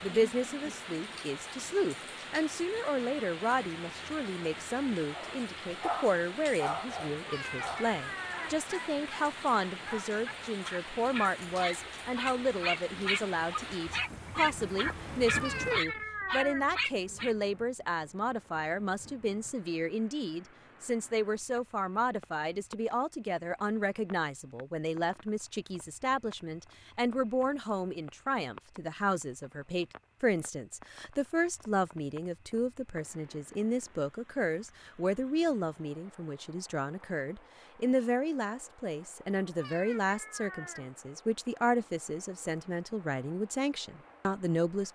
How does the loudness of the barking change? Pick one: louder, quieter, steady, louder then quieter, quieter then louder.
quieter then louder.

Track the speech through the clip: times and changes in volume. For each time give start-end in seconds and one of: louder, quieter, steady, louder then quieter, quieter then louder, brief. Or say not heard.
0.0-44.8 steady.